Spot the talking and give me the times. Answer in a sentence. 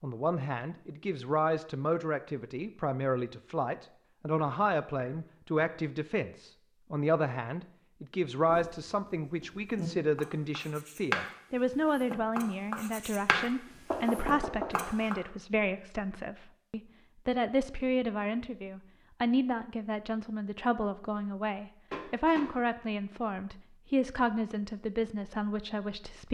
The talking can be heard from 0.0 to 26.2 s.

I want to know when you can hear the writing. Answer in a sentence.
You can hear the writing from 8.4 to 11.2 s, from 11.9 to 13.4 s and from 14.1 to 15.2 s.